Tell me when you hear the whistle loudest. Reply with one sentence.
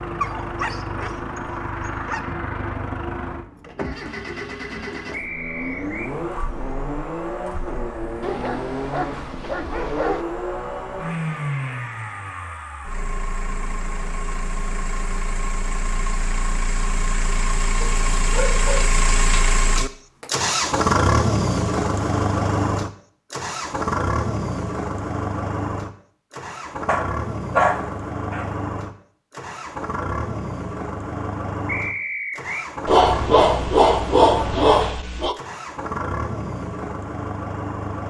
The volume of the whistle peaks at 32 seconds.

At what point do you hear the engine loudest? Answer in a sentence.
The loudest moment of the engine is at 21 seconds.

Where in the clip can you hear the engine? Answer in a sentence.
You can hear the engine from 0.0 to 38.0 s.